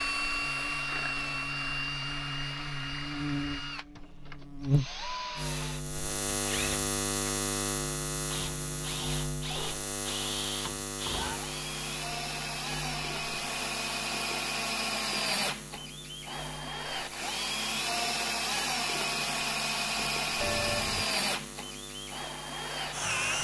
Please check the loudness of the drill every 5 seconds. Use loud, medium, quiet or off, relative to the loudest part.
loud, medium, loud, loud, loud.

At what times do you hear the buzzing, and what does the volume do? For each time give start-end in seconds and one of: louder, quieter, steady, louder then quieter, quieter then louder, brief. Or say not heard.
0.0-23.3 quieter.